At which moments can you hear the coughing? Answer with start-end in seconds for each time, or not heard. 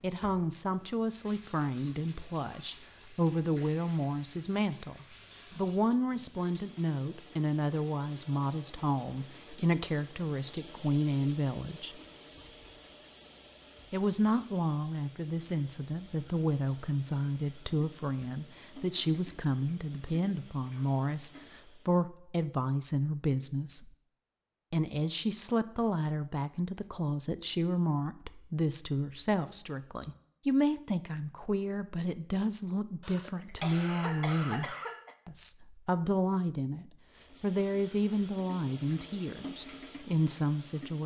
33.0-35.1.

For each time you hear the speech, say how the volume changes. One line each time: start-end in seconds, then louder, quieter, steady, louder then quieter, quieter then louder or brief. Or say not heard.
0.0-12.0 steady
13.9-23.9 steady
24.7-41.0 steady.